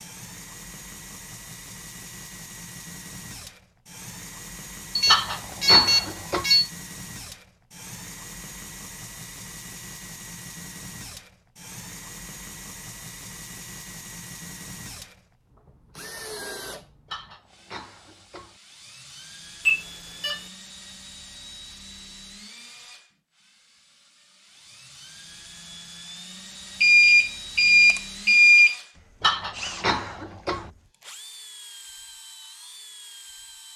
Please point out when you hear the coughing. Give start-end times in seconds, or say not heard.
5.0-6.5, 17.1-18.6, 29.2-30.7.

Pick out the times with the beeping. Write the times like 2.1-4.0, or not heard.
5.0-6.7, 19.6-20.4, 26.8-28.8.